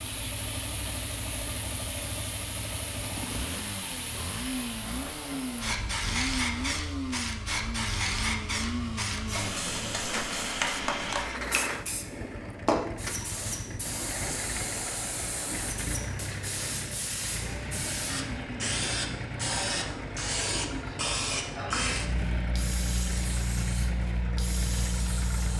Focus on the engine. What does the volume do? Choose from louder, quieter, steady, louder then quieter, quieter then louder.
steady.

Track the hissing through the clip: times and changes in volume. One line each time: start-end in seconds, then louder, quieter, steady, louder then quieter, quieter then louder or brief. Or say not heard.
0.0-25.5 louder.